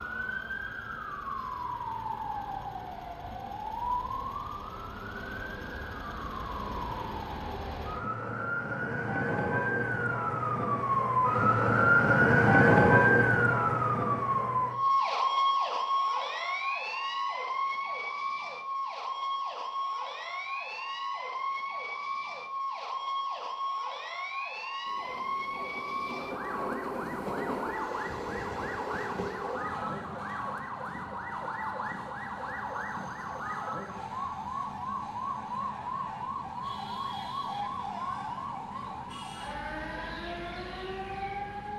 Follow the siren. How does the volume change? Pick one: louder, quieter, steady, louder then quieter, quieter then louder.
louder then quieter.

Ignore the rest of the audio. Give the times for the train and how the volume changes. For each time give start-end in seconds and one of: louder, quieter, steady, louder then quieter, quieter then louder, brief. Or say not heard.
24.9-41.7 quieter.